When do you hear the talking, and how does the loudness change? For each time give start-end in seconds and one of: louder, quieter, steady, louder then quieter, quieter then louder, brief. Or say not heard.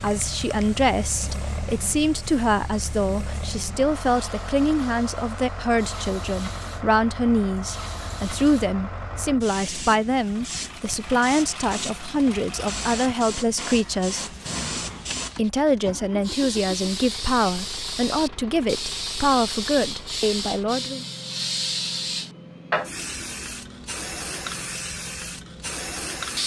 0.0-14.2 steady
15.3-21.1 steady.